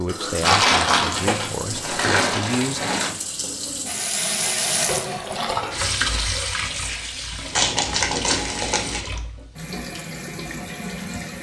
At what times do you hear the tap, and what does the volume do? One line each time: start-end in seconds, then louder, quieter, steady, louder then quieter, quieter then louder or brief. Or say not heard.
0.0-11.3 louder then quieter.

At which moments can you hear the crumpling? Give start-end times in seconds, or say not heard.
0.4-3.1, 7.5-9.0.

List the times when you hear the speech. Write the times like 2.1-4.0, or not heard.
0.0-2.9.